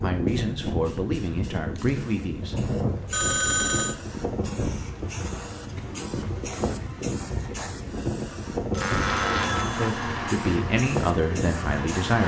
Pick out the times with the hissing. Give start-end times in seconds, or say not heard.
0.0-12.2.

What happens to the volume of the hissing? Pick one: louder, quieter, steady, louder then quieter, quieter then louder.
steady.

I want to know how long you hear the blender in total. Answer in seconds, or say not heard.
3 s.